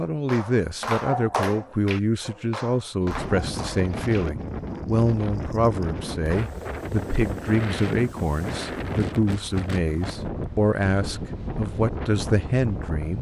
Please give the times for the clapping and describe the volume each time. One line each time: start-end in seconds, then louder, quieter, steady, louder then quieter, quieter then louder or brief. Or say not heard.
0.1-4.2 quieter.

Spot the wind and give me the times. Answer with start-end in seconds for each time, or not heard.
3.0-13.1.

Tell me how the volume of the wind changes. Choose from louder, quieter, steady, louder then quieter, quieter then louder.
steady.